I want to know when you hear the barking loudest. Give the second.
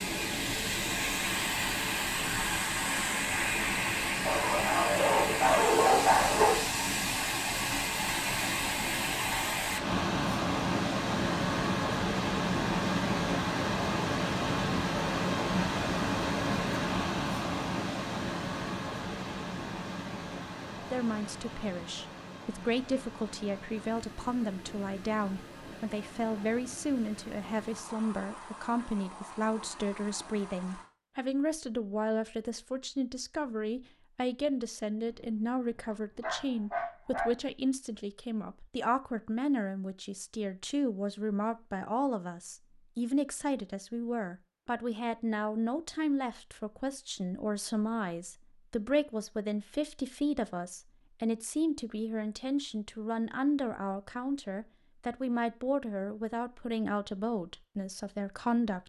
6 s.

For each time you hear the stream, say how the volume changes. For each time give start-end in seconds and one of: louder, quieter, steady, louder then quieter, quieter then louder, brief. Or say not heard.
0.0-30.9 quieter.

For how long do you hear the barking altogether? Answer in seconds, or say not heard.
5 s.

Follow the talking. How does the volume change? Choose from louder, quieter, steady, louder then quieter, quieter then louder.
steady.